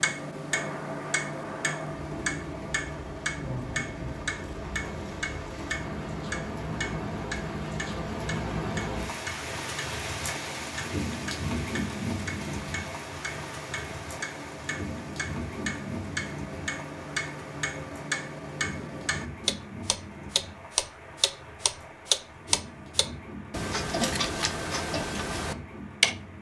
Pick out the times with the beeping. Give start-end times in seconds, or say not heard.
not heard.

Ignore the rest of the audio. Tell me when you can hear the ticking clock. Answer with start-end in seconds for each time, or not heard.
0.0-26.1.